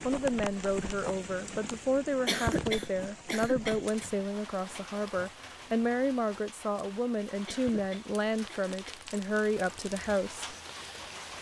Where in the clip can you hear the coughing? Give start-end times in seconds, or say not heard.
2.2-4.1, 7.5-9.0.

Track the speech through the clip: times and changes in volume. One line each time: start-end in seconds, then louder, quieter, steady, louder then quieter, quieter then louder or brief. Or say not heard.
0.0-10.6 steady.